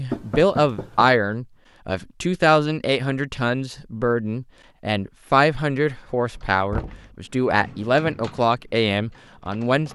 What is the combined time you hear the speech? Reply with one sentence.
The speech can be heard for 10 seconds in total.